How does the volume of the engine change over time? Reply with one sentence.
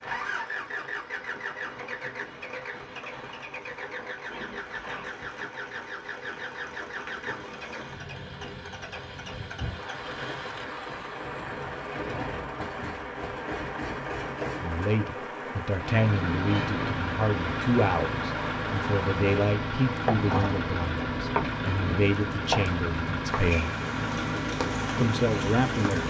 The volume of the engine goes up.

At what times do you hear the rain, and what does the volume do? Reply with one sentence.
The rain can be heard from 0.0 to 26.0 s, getting louder.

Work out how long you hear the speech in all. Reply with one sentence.
The speech can be heard for 10 seconds in total.